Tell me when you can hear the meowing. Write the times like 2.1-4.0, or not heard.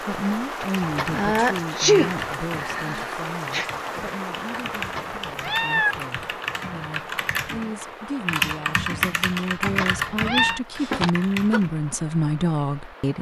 0.8-1.2, 4.8-6.0, 9.6-10.6.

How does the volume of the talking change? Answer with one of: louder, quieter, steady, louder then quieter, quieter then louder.
quieter then louder.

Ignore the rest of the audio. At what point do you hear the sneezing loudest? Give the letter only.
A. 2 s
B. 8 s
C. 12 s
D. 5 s
A.